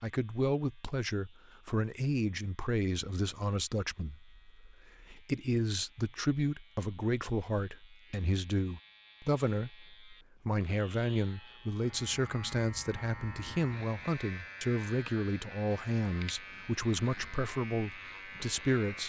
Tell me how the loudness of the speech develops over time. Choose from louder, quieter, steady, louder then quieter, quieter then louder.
steady.